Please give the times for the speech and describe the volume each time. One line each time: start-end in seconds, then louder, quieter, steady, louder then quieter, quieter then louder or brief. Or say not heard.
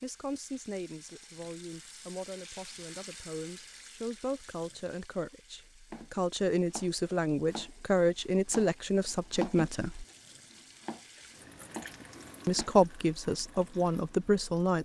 0.0-10.1 louder
12.4-14.8 brief.